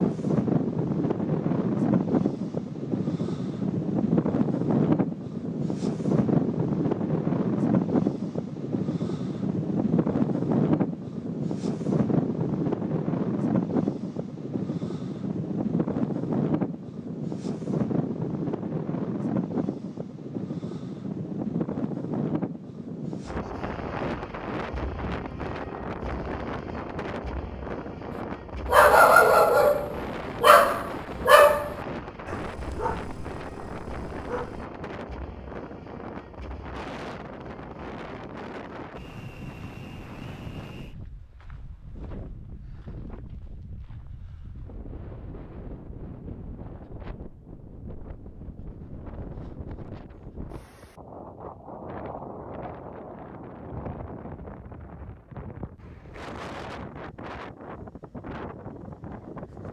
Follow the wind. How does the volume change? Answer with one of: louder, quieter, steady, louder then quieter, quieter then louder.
quieter.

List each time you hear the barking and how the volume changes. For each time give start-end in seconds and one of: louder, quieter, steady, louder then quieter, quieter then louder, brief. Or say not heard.
28.6-34.7 quieter.